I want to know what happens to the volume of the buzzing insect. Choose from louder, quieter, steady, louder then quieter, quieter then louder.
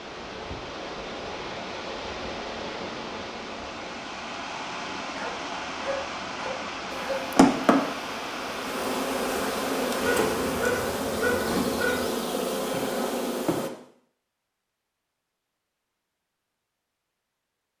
steady.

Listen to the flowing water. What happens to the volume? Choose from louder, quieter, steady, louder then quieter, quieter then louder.
steady.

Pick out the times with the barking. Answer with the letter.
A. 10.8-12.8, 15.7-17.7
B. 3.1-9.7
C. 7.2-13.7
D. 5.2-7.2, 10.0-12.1
D.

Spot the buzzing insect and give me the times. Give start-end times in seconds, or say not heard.
7.2-13.7.